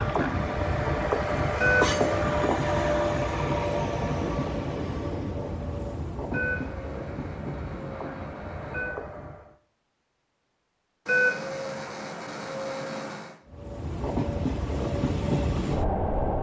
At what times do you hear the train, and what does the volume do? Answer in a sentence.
The train can be heard from 0.0 to 9.6 s, getting quieter; and briefly from 13.4 to 16.3 s.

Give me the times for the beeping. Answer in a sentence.
You can hear the beeping from 1.6 to 2.3 s, from 6.3 to 9.0 s and from 11.1 to 13.3 s.